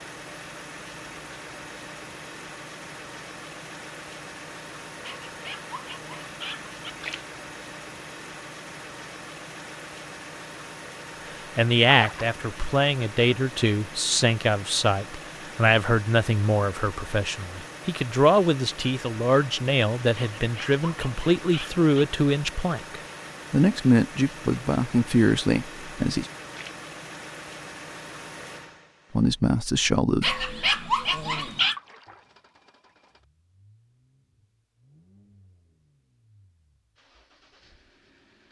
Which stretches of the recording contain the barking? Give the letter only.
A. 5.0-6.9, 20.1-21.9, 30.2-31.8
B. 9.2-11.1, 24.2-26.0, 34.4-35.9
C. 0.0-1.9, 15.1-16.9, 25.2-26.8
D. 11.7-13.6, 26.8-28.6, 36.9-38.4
A.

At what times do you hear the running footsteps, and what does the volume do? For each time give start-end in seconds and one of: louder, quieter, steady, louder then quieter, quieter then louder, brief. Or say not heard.
not heard.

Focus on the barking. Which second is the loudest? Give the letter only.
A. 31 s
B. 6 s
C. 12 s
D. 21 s
A.